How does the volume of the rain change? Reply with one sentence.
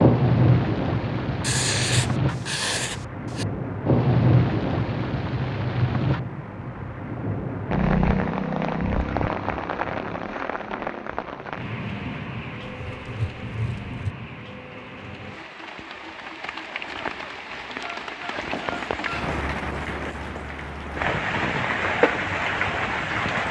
The loudness of the rain goes down, then up.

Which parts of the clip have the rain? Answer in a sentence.
The rain can be heard from 0.0 to 23.4 s.